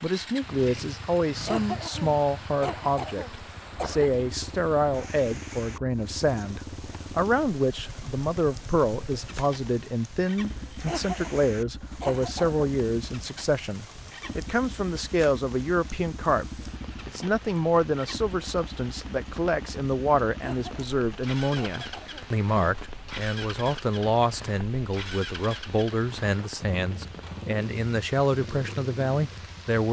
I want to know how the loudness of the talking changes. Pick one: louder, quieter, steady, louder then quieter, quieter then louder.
steady.